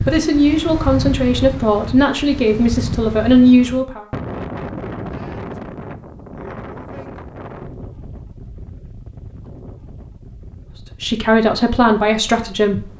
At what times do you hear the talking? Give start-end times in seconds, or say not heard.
0.1-4.0, 11.0-12.8.